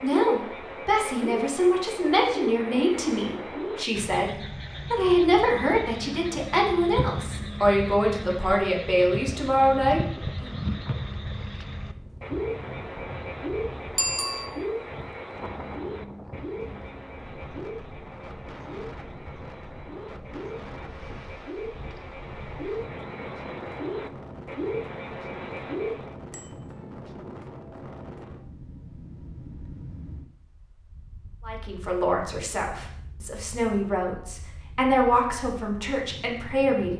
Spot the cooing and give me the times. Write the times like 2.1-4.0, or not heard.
not heard.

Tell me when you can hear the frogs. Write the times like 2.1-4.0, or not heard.
0.0-26.1.